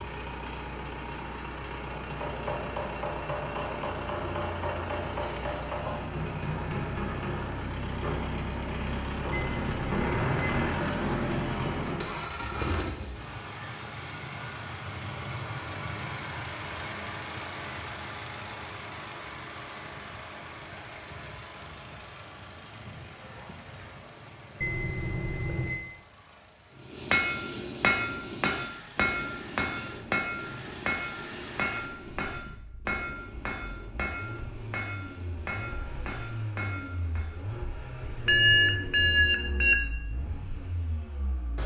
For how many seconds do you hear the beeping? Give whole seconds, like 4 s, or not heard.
4 s.